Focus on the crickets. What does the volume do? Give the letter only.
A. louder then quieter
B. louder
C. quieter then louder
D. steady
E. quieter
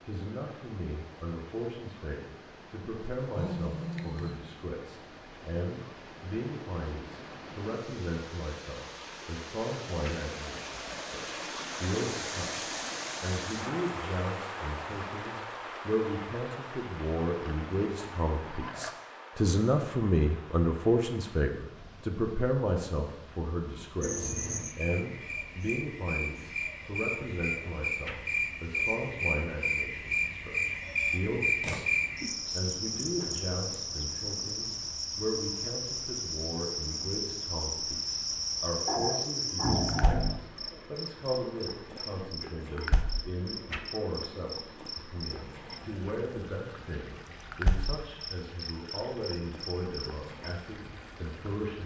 E.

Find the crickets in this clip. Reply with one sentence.
You can hear the crickets from 24.0 to 51.8 s.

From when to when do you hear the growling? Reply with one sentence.
You can hear the growling from 3.2 to 4.5 s, from 17.4 to 18.9 s and from 38.9 to 40.4 s.